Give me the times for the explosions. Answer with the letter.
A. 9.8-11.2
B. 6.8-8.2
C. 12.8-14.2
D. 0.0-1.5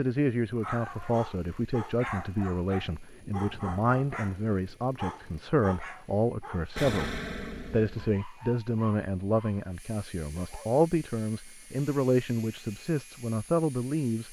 B.